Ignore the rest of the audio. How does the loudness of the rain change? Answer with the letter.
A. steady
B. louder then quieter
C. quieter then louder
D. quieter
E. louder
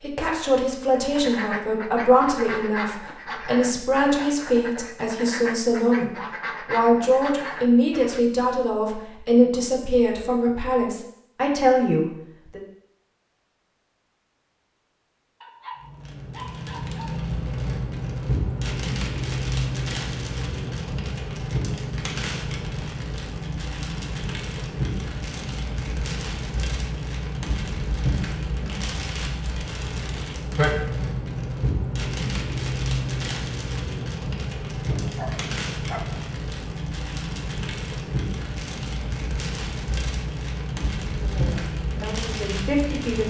A.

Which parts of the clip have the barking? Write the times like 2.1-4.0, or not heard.
15.4-17.2, 34.9-36.2.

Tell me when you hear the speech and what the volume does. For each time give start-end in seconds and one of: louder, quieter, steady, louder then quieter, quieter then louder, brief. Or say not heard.
0.0-12.6 steady
41.2-43.2 brief.